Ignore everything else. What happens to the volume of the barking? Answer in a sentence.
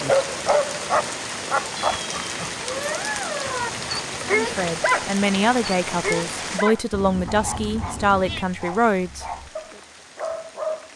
The volume of the barking goes down.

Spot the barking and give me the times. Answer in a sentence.
You can hear the barking from 0.0 to 10.9 s.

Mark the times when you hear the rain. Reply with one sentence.
You can hear the rain from 0.0 to 10.9 s.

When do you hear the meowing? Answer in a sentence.
You can hear the meowing from 1.8 to 3.7 s and from 6.9 to 8.4 s.